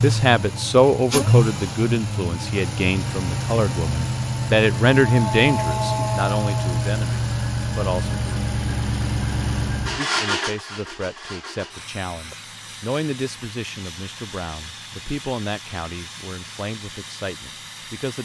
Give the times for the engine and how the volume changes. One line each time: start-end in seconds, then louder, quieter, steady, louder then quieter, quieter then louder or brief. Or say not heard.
0.0-18.2 quieter.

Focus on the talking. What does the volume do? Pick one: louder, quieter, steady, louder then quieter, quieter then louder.
quieter.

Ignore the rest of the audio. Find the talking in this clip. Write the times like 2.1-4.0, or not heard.
0.0-8.2, 9.9-18.2.